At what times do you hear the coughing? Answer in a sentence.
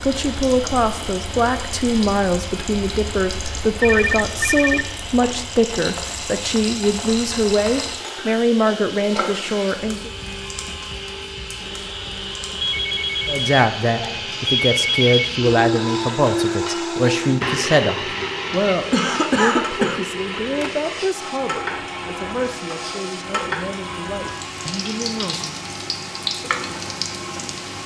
The coughing can be heard from 18.9 to 20.0 s.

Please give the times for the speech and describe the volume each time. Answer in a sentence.
The speech can be heard from 0.0 to 10.1 s, at a steady volume; and from 13.2 to 25.6 s, getting quieter.